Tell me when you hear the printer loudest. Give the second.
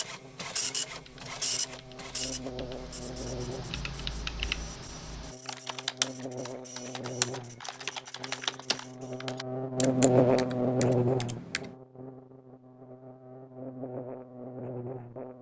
1 s.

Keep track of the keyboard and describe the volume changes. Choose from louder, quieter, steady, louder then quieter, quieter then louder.
louder then quieter.